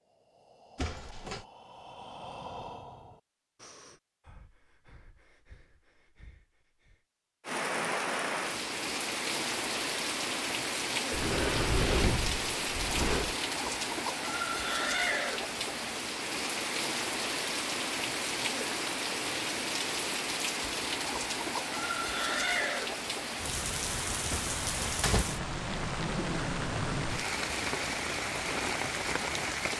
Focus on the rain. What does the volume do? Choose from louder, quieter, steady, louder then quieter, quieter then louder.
steady.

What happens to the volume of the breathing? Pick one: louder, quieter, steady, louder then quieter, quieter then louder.
louder then quieter.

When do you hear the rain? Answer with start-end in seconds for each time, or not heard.
7.5-29.7.